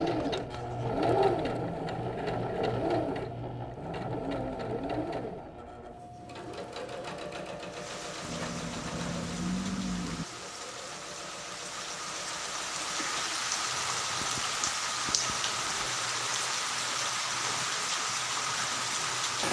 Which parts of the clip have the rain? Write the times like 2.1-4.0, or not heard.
7.7-19.4.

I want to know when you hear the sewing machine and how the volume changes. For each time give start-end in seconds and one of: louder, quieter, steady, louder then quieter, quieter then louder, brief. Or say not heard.
0.0-19.4 quieter.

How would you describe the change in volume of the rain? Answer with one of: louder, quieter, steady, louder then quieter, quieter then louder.
louder.